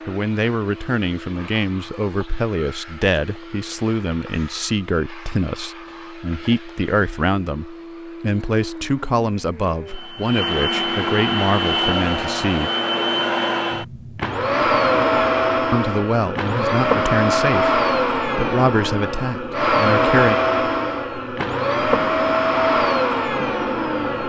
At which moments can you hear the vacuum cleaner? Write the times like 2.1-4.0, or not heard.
0.0-24.2.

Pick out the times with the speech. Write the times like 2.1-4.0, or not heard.
0.1-12.7, 15.7-20.4.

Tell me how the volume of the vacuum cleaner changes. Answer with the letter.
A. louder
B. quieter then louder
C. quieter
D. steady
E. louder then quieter
A.